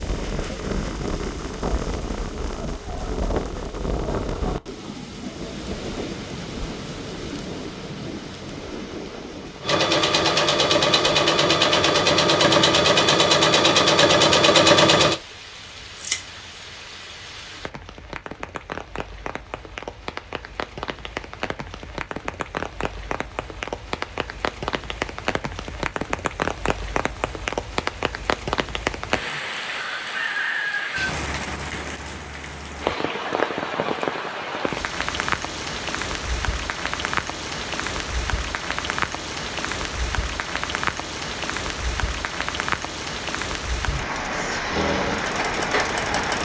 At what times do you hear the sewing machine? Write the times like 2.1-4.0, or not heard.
9.6-15.2, 44.7-46.4.